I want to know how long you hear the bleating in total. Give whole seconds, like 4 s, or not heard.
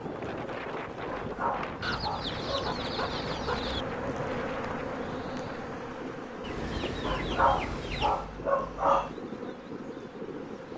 not heard.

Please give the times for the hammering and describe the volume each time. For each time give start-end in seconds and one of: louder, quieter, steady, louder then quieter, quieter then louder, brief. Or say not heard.
not heard.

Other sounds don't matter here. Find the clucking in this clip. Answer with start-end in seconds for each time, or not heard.
1.8-3.9, 6.4-8.3.